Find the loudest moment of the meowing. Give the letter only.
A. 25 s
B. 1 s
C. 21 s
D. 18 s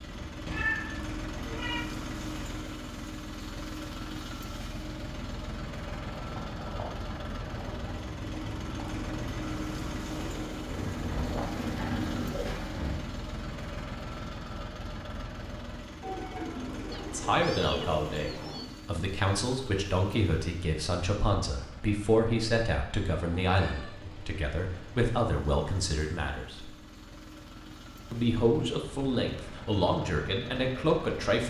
B.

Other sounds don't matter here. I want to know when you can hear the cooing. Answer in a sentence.
You can hear the cooing from 10.7 to 13.0 s and from 16.0 to 18.6 s.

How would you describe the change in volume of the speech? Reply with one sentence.
The volume of the speech stays about the same.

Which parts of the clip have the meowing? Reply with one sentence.
The meowing can be heard from 0.1 to 1.9 s, from 16.9 to 18.9 s and from 23.1 to 25.1 s.